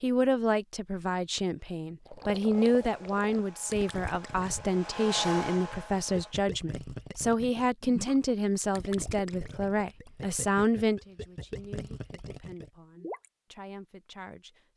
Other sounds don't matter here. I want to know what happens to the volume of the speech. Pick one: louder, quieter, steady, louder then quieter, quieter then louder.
quieter.